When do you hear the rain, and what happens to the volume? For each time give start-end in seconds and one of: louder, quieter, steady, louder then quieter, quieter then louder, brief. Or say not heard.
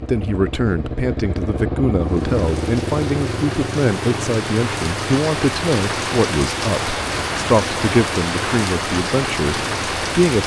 2.0-10.4 louder.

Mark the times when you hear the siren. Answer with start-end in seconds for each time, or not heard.
not heard.